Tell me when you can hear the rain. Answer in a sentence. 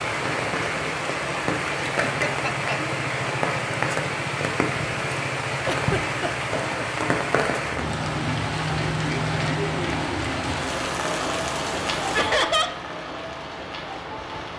You can hear the rain from 0.0 to 14.5 s.